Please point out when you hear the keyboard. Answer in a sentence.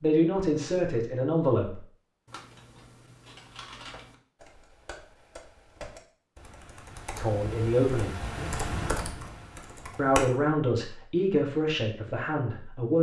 You can hear the keyboard from 2.2 to 10.3 s.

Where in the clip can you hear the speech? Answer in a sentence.
You can hear the speech from 0.0 to 1.8 s, from 7.2 to 8.2 s and from 9.9 to 12.9 s.